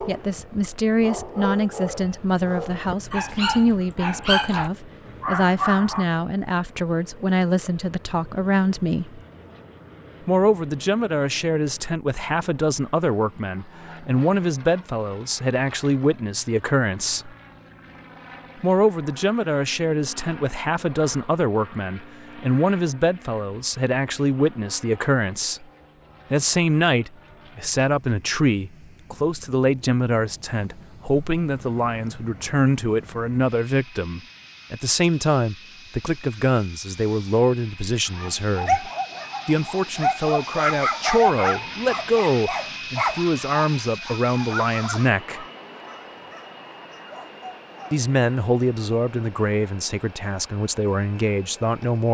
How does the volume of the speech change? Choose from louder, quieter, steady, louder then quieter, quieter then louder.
steady.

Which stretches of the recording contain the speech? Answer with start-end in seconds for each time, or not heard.
0.1-9.2, 10.2-17.3, 18.6-25.6, 26.3-45.5, 47.9-52.0.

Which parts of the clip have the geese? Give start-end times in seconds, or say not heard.
not heard.